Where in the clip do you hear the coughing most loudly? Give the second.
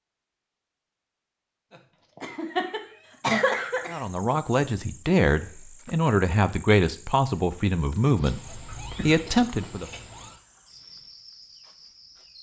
3 s.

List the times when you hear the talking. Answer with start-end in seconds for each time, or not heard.
3.9-9.9.